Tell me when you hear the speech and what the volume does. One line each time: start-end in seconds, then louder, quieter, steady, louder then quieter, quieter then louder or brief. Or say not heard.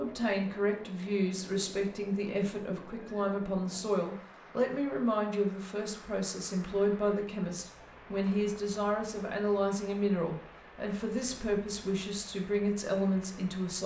0.0-13.8 steady.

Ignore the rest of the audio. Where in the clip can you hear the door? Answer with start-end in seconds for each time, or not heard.
not heard.